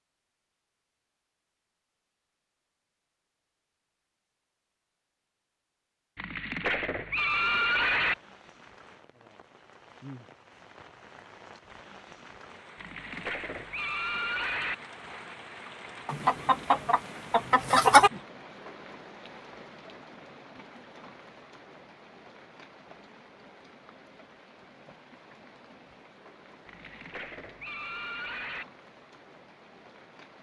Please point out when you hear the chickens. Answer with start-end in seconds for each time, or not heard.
16.1-18.1.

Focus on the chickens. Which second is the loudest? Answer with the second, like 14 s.
18 s.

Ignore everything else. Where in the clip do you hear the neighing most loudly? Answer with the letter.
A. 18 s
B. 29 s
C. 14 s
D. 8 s
D.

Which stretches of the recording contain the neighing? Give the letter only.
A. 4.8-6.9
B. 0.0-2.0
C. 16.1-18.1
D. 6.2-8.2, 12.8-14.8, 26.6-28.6
D.